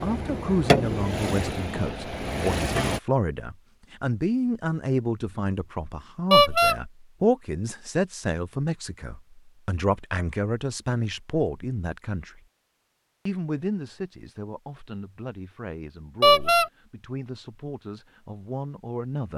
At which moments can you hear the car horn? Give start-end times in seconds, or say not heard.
6.3-6.8, 16.2-16.7.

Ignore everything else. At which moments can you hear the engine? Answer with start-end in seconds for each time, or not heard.
0.0-3.0.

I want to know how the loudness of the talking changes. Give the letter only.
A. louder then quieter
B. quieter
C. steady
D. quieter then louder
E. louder
B.